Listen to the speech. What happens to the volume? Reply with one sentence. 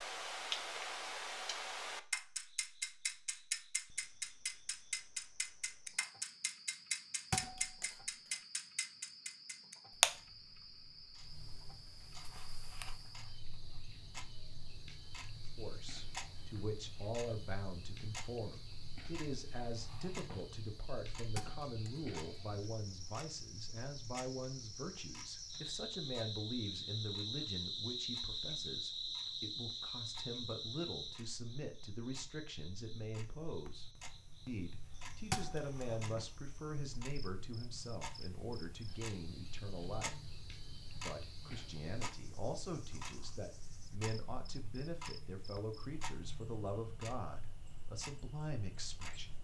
The volume of the speech stays about the same.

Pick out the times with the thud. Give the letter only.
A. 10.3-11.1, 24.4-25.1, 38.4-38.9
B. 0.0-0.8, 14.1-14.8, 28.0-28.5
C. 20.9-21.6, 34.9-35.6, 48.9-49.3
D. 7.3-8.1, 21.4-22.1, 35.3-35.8
D.